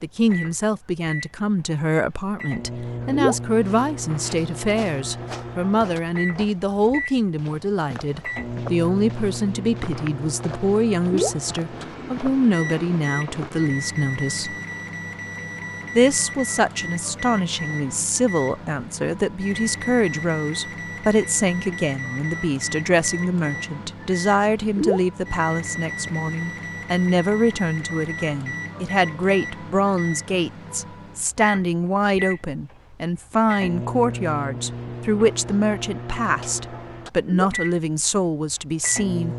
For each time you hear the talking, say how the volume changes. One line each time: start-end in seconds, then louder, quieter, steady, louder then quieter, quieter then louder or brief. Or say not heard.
0.0-14.6 steady
15.9-39.3 steady.